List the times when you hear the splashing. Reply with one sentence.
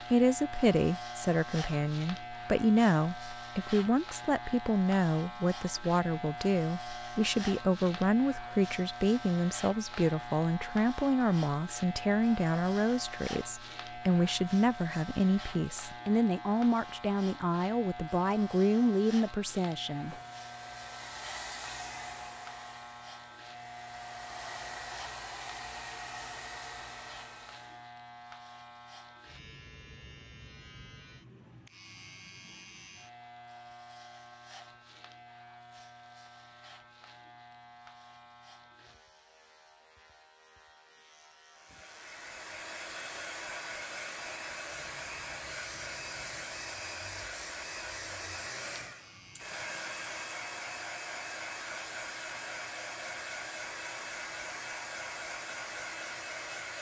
You can't hear the splashing here.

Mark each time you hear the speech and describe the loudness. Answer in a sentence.
You can hear the speech from 0.1 to 20.1 s, at a steady volume.